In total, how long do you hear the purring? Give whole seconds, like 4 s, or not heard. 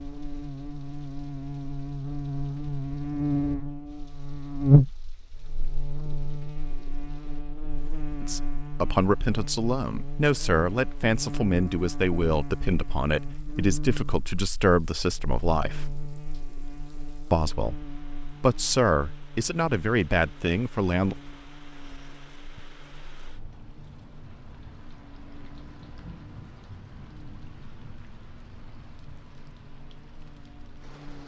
not heard.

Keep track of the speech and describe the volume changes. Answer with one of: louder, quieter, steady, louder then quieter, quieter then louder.
steady.